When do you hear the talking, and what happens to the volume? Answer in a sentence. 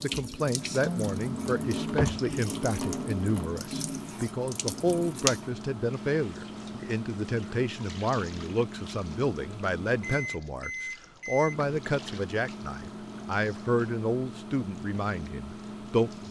You can hear the talking from 0.0 to 16.2 s, at a steady volume.